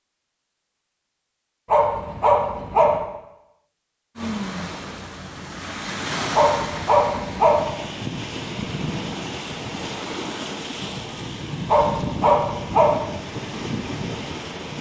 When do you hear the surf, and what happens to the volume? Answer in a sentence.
You can hear the surf from 4.2 to 14.7 s, at a steady volume.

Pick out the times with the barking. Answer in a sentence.
The barking can be heard from 1.6 to 3.0 s, from 6.3 to 7.7 s and from 11.7 to 12.9 s.